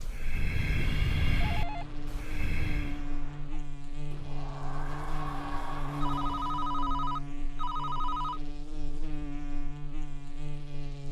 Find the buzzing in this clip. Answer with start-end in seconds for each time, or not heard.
0.0-11.0.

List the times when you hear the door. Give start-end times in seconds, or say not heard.
4.1-6.8.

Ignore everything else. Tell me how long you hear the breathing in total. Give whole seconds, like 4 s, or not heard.
3 s.